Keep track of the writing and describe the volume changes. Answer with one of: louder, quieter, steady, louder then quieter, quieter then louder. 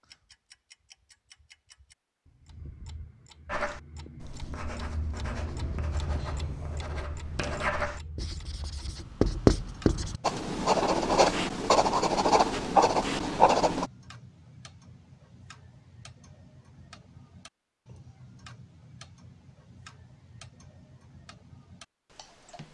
louder.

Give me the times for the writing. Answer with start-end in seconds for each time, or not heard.
3.5-13.9.